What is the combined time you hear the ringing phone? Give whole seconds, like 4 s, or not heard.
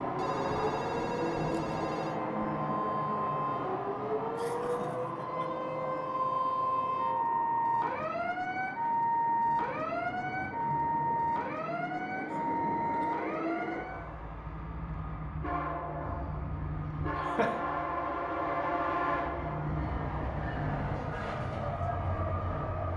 2 s.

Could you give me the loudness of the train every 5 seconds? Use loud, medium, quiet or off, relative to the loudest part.
loud, medium, medium, loud, loud.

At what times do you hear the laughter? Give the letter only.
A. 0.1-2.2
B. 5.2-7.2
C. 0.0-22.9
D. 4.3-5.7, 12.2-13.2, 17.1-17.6
D.